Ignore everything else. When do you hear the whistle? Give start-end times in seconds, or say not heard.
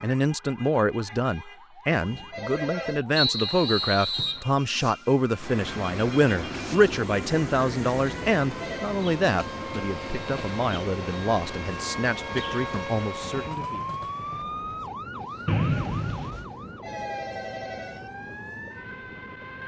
3.1-4.5, 15.4-16.4.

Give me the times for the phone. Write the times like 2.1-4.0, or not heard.
1.9-3.0, 8.4-8.9, 16.4-18.1.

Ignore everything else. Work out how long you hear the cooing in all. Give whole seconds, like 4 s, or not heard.
not heard.